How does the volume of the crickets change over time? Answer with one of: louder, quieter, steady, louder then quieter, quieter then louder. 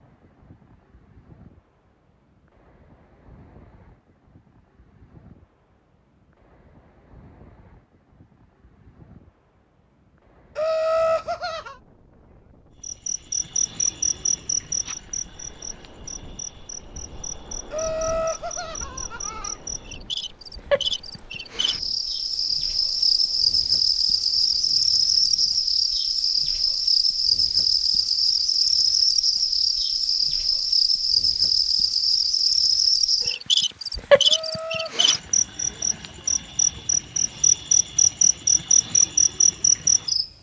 louder.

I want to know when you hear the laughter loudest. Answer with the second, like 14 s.
11 s.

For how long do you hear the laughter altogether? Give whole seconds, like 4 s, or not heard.
4 s.